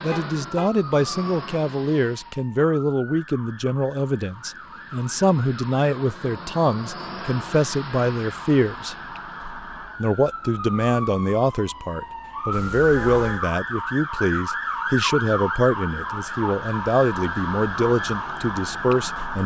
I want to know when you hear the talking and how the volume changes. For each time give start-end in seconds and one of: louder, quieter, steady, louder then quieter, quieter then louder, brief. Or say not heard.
0.0-8.9 steady
10.0-19.4 steady.